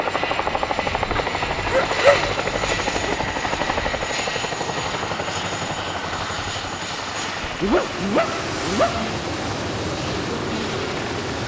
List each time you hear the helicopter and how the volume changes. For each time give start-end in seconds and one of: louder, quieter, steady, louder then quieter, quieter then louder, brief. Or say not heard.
0.0-11.4 quieter.